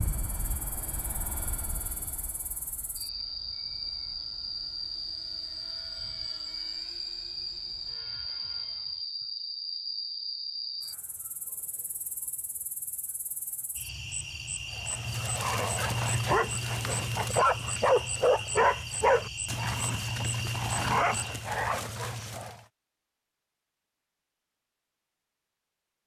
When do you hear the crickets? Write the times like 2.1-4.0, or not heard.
0.0-21.5.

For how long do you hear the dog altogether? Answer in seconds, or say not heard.
8 s.